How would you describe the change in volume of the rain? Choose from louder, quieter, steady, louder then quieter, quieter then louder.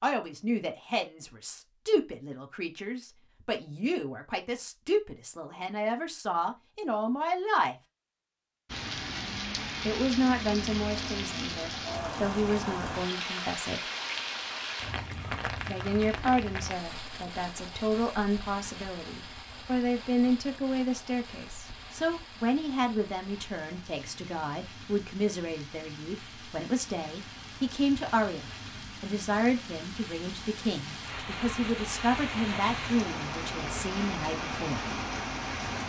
quieter then louder.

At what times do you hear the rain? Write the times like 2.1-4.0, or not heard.
8.7-35.8.